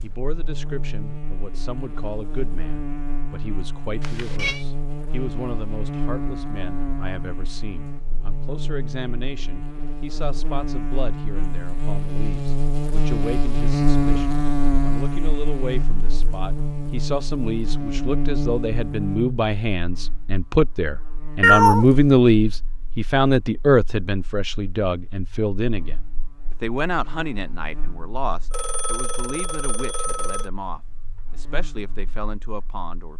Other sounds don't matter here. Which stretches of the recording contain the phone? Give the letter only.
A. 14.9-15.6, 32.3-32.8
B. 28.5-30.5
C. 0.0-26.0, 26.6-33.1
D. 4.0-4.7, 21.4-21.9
B.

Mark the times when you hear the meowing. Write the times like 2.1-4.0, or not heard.
4.0-4.7, 21.4-21.9.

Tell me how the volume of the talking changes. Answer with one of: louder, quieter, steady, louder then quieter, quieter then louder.
louder then quieter.